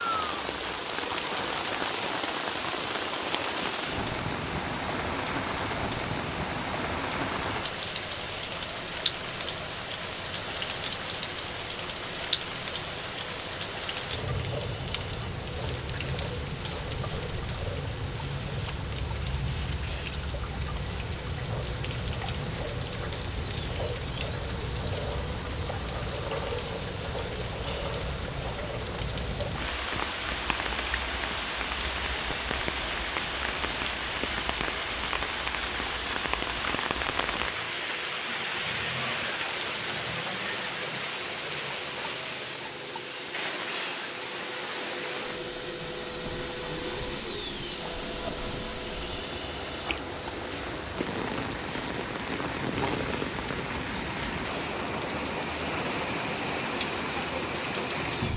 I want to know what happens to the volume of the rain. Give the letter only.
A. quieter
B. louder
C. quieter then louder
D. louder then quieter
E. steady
E.